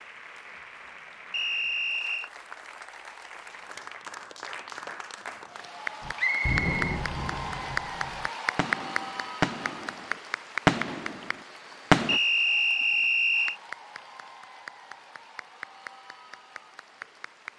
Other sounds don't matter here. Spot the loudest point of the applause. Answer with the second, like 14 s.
8 s.